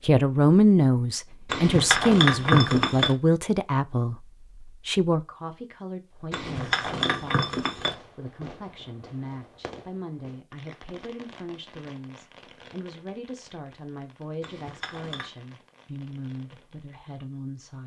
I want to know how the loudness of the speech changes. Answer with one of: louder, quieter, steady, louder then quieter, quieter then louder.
quieter.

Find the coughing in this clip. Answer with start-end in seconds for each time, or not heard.
not heard.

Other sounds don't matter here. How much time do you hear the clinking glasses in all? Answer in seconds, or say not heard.
4 s.